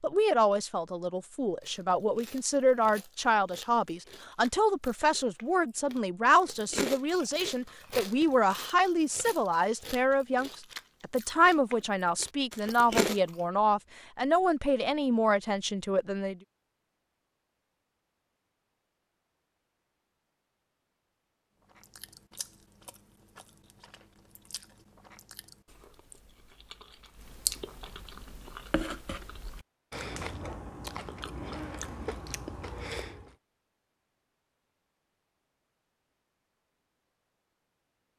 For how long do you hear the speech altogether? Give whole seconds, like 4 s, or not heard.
16 s.